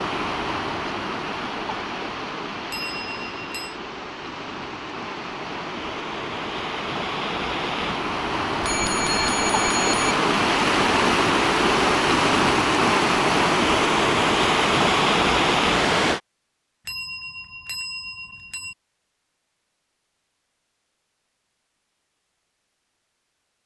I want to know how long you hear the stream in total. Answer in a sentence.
You can hear the stream for 16 seconds altogether.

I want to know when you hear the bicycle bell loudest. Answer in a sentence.
The loudest moment of the bicycle bell is at 9 seconds.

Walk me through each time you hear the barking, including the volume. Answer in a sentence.
The barking can't be heard in this clip.